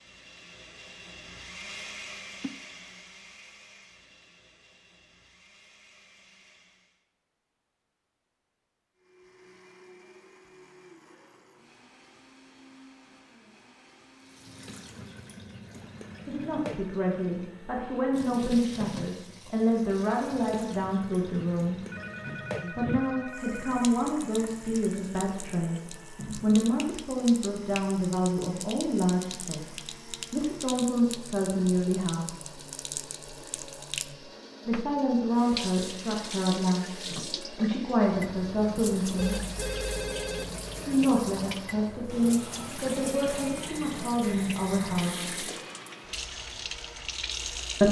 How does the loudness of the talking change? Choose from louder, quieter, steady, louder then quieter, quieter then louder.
steady.